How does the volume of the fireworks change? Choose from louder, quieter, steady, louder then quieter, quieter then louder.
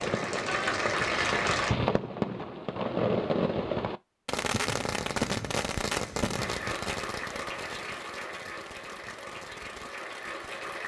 quieter.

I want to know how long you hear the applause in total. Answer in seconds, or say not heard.
6 s.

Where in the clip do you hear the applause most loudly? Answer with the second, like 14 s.
1 s.